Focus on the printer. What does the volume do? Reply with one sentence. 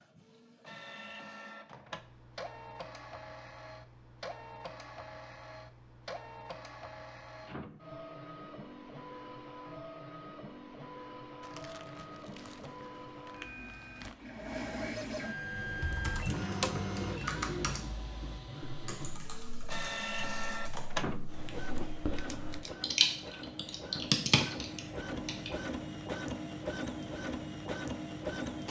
The volume of the printer goes up.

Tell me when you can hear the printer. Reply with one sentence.
You can hear the printer from 0.0 to 28.6 s.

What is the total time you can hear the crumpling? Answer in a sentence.
The crumpling can be heard for 3 seconds in total.